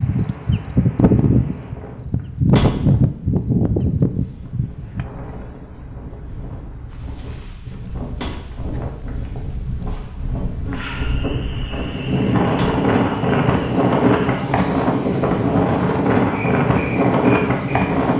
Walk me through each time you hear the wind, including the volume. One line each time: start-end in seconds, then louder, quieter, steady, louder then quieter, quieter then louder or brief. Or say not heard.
0.0-18.1 louder.